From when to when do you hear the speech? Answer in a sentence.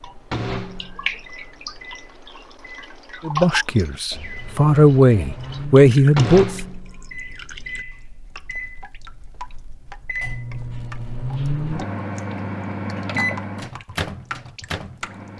The speech can be heard from 3.2 to 6.6 s.